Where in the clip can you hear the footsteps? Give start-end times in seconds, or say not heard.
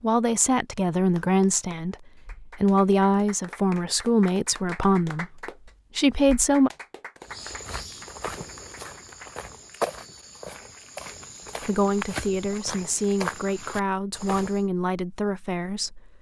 7.2-14.7.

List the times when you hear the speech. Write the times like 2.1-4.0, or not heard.
0.0-6.7, 11.7-16.1.